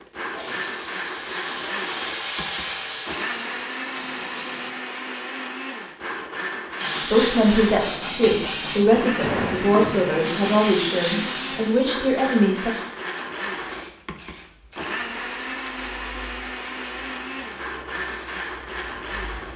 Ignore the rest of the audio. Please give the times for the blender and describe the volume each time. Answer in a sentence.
The blender can be heard from 0.0 to 19.5 s, at a steady volume.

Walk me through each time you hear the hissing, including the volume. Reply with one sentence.
You can hear the hissing from 0.0 to 4.7 s, getting louder then quieter; and from 6.8 to 19.5 s, getting quieter.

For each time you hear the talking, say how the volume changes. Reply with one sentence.
The talking can be heard from 7.1 to 12.7 s, at a steady volume.